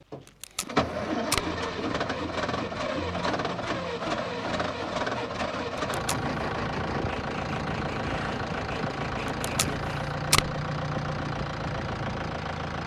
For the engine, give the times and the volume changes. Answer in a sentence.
You can hear the engine from 0.0 to 12.8 s, at a steady volume.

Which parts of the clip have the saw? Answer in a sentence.
You can hear the saw from 0.8 to 9.9 s.